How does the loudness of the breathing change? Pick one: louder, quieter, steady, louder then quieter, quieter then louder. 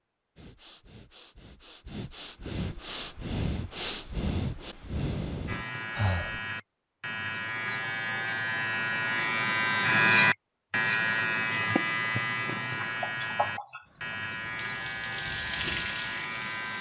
louder.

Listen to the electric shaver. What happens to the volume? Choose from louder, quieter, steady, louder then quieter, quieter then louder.
louder then quieter.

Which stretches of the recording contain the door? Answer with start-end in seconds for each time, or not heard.
not heard.